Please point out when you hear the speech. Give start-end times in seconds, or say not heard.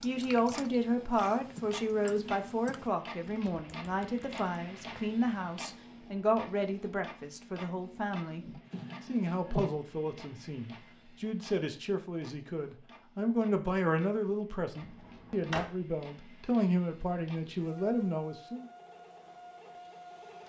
0.0-8.4, 9.1-18.6.